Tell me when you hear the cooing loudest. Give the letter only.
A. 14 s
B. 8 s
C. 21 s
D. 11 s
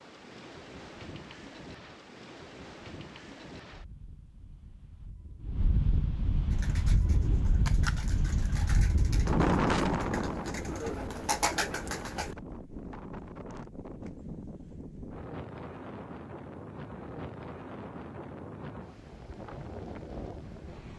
D.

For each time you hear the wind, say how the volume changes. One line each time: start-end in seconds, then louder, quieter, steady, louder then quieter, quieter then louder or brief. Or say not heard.
0.0-20.9 louder then quieter.